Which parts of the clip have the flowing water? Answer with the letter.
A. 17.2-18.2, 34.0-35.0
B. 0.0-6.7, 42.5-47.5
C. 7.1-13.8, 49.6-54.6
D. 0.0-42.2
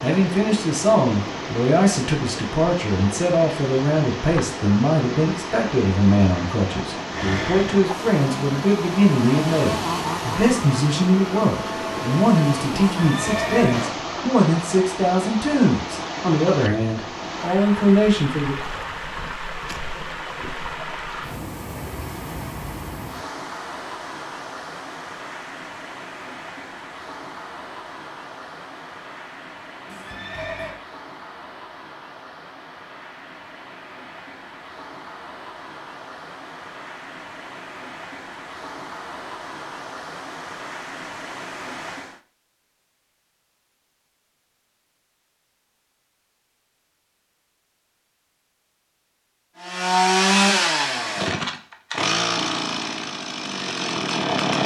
D.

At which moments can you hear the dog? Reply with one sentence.
The dog can't be heard in this clip.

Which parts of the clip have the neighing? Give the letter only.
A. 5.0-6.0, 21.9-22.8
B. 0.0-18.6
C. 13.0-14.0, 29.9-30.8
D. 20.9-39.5
C.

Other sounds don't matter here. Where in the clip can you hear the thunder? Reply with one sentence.
The thunder can't be heard in this clip.